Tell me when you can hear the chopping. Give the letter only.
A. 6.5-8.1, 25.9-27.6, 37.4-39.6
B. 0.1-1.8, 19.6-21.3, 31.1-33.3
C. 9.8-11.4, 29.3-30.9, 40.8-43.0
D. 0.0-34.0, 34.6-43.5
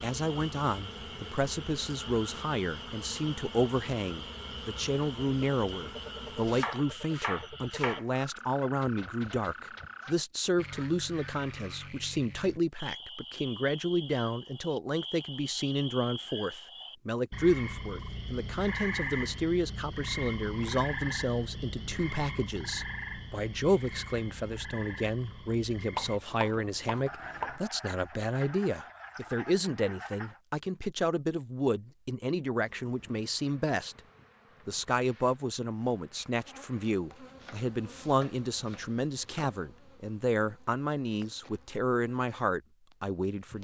A.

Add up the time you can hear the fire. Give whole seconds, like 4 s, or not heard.
not heard.